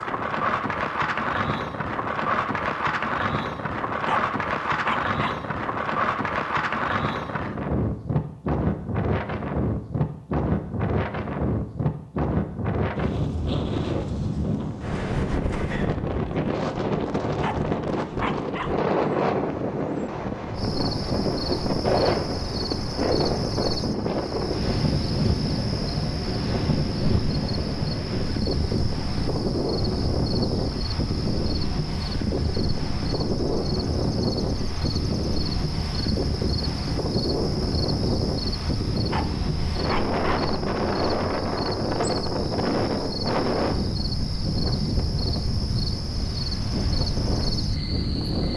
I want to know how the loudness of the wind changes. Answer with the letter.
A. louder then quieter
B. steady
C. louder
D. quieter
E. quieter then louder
B.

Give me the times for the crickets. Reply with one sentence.
You can hear the crickets from 20.5 to 48.5 s.